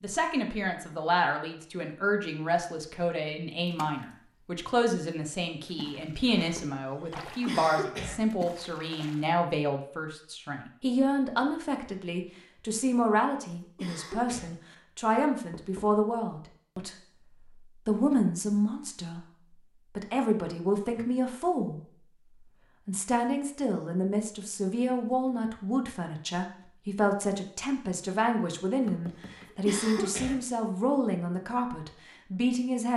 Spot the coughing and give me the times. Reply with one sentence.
The coughing can be heard from 7.0 to 8.2 s, from 13.6 to 14.5 s and from 29.2 to 30.4 s.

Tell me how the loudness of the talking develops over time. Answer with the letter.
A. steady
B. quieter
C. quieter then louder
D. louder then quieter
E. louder
A.